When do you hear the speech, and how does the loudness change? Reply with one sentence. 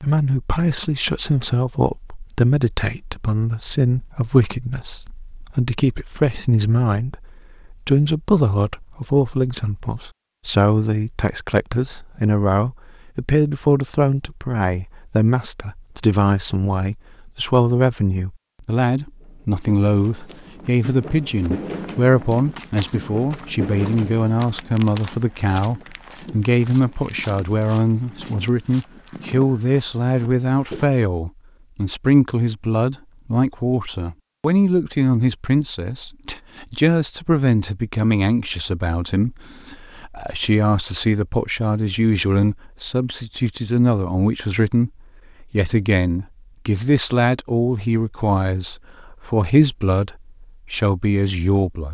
The speech can be heard from 0.0 to 51.8 s, at a steady volume.